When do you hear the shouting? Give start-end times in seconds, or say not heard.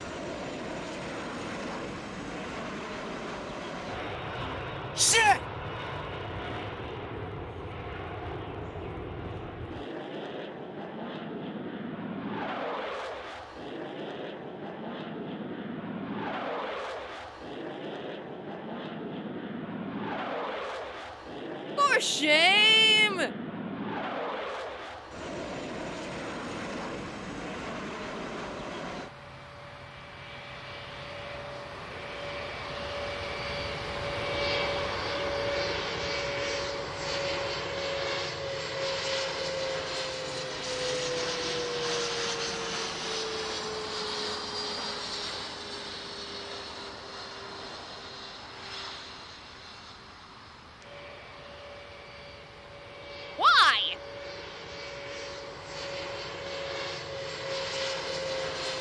5.0-5.4, 21.8-23.3, 53.4-54.0.